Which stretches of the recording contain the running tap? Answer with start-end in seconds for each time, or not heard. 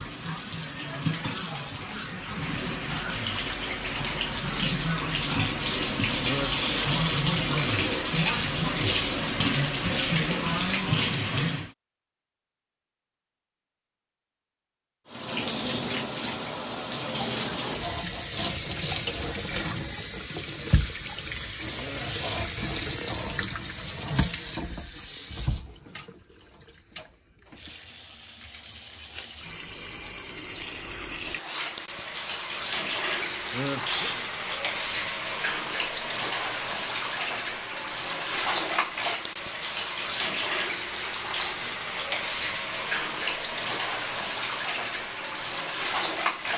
0.0-11.7, 15.1-46.5.